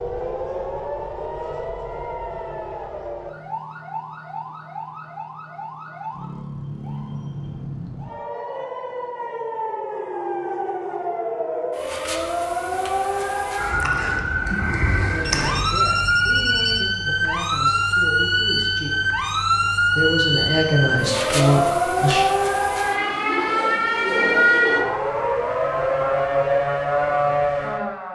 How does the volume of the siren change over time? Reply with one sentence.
The loudness of the siren goes up.